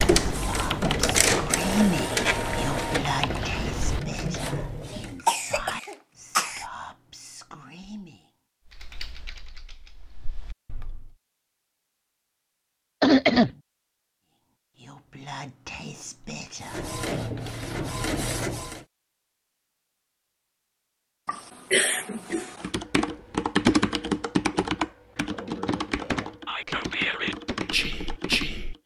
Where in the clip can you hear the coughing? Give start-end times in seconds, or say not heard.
5.2-6.7, 13.0-13.5, 21.2-22.6.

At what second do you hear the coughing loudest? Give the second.
13 s.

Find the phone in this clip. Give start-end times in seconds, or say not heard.
not heard.